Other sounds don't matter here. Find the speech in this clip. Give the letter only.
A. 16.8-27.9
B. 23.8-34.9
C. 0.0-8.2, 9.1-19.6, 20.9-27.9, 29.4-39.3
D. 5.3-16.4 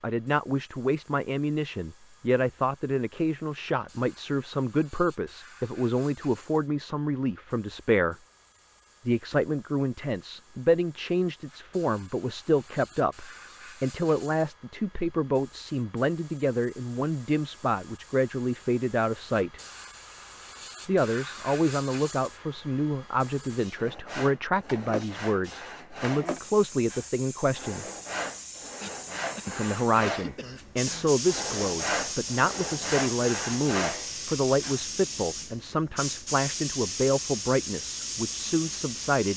C.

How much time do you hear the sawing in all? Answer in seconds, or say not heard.
11 s.